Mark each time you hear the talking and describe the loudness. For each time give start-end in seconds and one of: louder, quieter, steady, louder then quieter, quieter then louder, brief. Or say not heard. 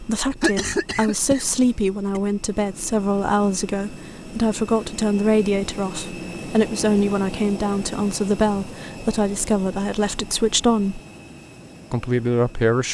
0.0-11.0 steady
11.9-12.8 brief.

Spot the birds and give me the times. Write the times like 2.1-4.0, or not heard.
not heard.